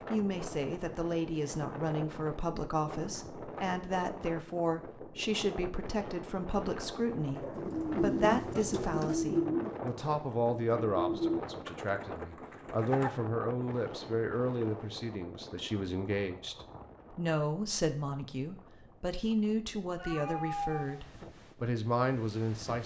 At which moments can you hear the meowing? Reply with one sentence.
You can hear the meowing from 19.9 to 21.0 s.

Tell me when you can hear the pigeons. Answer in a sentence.
You can hear the pigeons from 7.1 to 13.1 s.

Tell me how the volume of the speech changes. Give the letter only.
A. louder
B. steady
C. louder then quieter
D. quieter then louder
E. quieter
B.